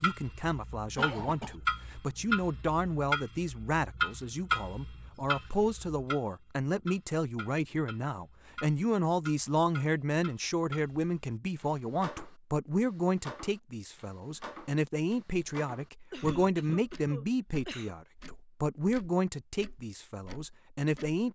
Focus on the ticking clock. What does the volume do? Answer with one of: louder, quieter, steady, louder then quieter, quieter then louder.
quieter.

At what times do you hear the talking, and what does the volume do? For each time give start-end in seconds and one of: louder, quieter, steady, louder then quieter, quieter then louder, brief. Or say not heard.
0.0-21.3 steady.